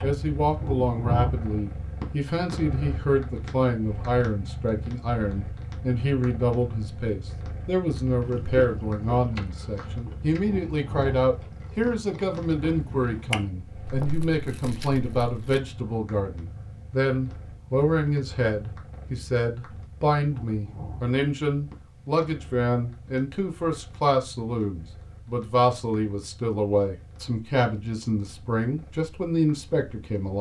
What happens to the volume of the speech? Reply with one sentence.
The volume of the speech stays about the same.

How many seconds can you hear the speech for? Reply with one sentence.
The speech can be heard for 30 seconds in total.